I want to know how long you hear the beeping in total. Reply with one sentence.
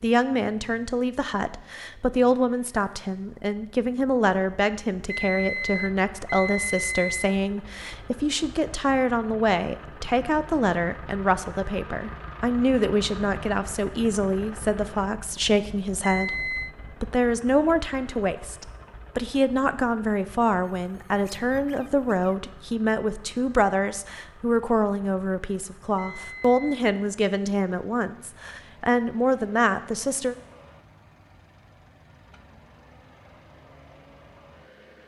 You can hear the beeping for 4 seconds altogether.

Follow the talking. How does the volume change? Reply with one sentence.
The loudness of the talking stays about the same.